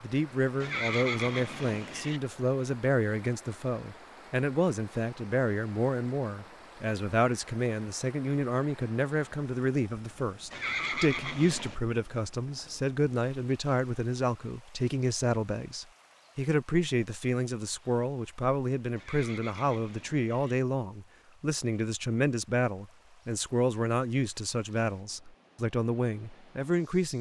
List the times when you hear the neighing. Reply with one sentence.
You can hear the neighing from 0.6 to 2.2 s, from 10.5 to 11.8 s and from 18.9 to 20.6 s.